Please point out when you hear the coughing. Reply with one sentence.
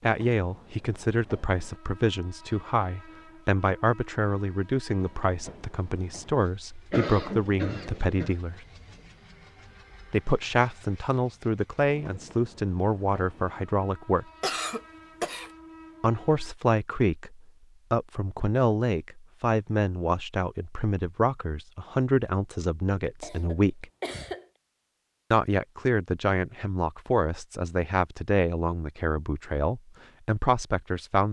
The coughing can be heard from 6.9 to 8.3 s, from 14.4 to 15.5 s and from 23.2 to 24.4 s.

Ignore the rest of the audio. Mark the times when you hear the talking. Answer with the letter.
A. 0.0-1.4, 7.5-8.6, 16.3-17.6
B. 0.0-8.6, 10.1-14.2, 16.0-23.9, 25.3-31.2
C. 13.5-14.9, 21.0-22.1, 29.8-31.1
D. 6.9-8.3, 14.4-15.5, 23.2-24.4
B.